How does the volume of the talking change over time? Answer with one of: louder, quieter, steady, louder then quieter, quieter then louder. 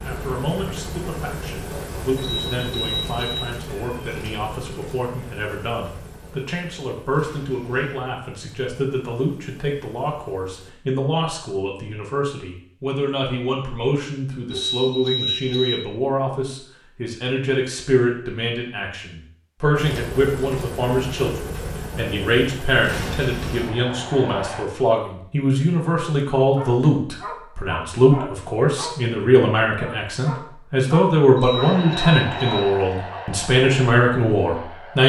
louder.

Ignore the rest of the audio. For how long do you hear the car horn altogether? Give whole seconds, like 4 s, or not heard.
4 s.